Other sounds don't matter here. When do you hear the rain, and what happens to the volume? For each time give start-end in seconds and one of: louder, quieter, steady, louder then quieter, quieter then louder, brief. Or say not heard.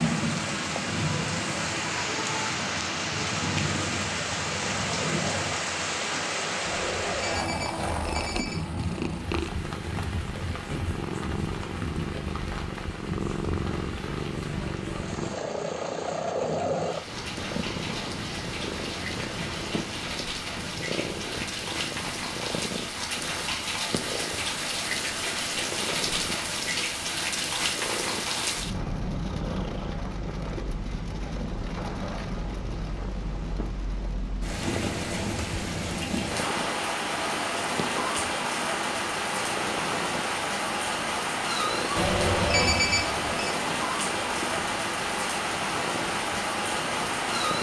0.0-47.5 quieter then louder.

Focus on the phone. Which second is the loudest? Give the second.
43 s.